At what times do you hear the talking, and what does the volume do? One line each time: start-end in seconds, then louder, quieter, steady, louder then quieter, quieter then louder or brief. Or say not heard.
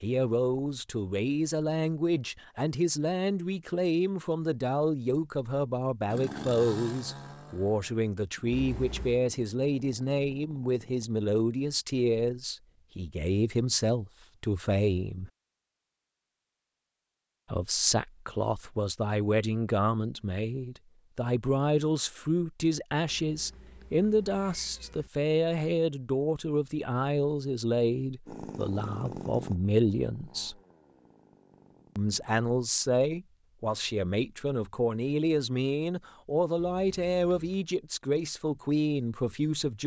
0.0-15.3 steady
17.5-30.6 steady
31.9-39.8 steady.